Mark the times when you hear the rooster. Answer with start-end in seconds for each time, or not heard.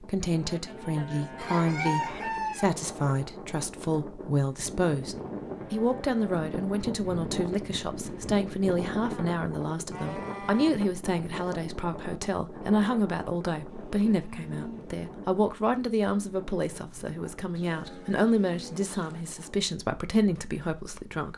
1.4-2.8.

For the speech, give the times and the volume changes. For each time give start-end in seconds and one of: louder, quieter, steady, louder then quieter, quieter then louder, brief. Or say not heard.
0.0-21.3 steady.